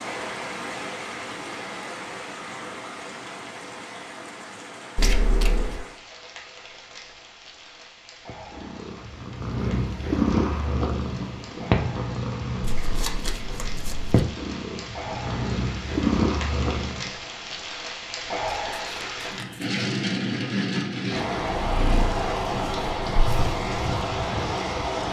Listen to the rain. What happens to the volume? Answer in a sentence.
The volume of the rain goes down, then up.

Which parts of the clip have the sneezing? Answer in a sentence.
The sneezing can't be heard in this clip.